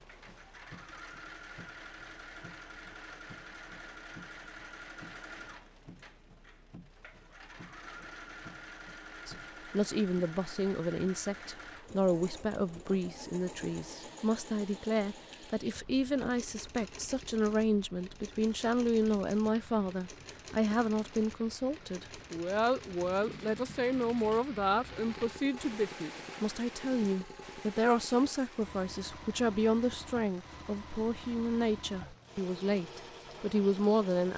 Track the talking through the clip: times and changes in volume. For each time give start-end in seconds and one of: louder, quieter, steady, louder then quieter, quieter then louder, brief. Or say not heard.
9.2-34.3 steady.